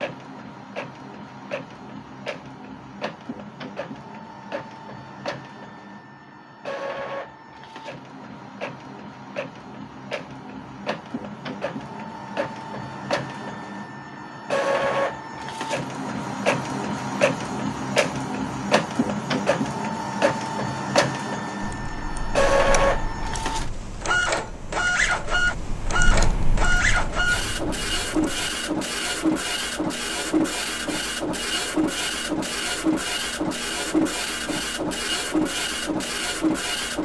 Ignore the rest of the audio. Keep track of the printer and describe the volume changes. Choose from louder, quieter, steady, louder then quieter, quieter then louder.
louder.